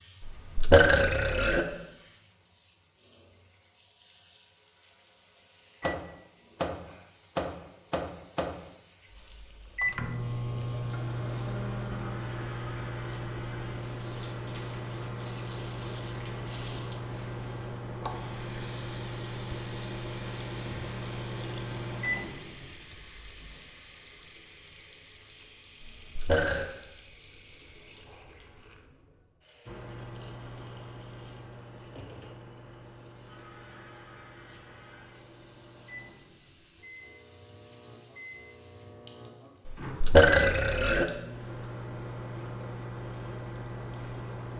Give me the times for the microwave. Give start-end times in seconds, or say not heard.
5.8-23.4, 29.6-44.5.